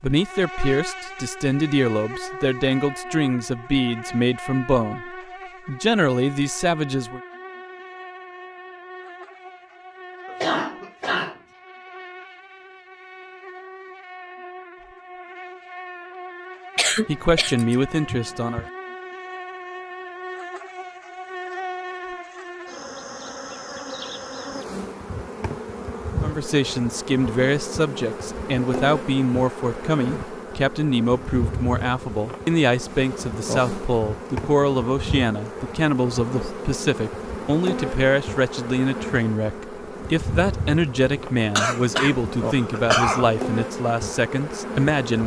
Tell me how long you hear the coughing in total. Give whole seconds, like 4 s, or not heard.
5 s.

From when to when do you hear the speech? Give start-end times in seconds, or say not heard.
0.0-7.2, 17.1-18.6, 26.2-45.2.